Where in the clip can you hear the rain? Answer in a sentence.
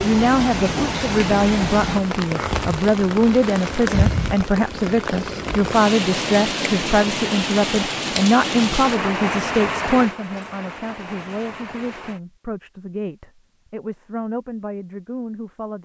You can hear the rain from 0.0 to 12.2 s.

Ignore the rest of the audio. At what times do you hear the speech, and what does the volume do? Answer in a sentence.
The speech can be heard from 0.0 to 15.7 s, getting quieter.